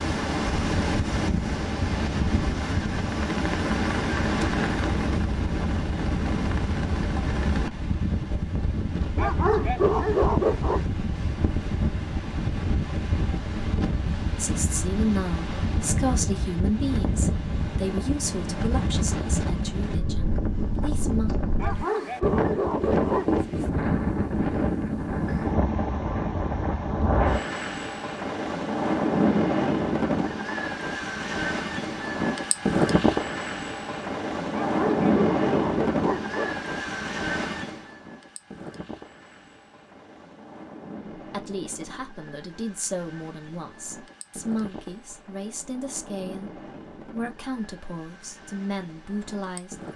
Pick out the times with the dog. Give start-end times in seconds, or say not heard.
9.2-10.8, 21.6-23.3, 34.5-36.5.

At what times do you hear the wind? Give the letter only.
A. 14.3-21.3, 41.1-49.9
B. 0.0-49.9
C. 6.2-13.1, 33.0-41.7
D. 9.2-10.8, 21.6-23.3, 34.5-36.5
B.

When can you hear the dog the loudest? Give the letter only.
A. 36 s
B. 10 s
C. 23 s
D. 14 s
B.